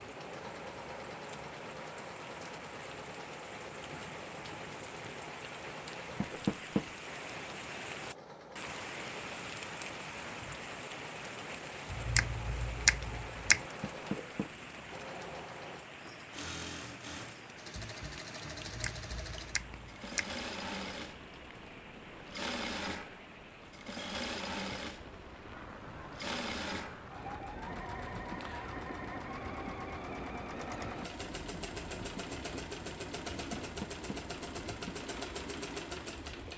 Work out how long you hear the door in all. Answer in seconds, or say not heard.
2 s.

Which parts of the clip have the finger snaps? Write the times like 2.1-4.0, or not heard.
11.9-13.6, 18.6-20.3.